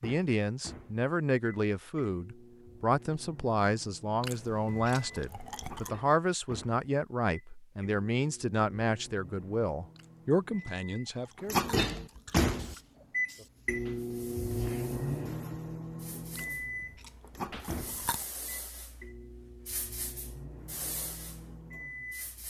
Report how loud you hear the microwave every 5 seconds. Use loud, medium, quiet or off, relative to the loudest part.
quiet, quiet, loud, medium, quiet.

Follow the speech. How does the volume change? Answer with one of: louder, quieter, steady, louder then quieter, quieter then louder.
steady.